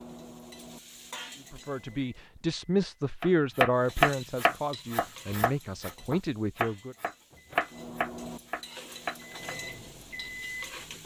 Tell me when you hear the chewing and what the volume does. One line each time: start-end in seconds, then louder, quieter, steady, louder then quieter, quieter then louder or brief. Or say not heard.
not heard.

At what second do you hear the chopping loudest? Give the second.
4 s.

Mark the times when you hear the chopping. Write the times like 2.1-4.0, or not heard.
3.2-9.6.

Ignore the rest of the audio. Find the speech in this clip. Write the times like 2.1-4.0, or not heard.
1.4-7.0.